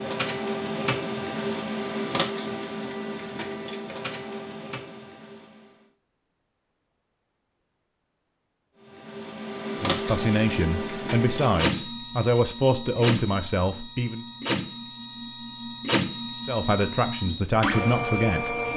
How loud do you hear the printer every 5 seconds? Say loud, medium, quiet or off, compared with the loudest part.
loud, medium, loud, loud.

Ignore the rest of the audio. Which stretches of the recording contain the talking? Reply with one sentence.
You can hear the talking from 9.8 to 14.2 s and from 16.4 to 18.6 s.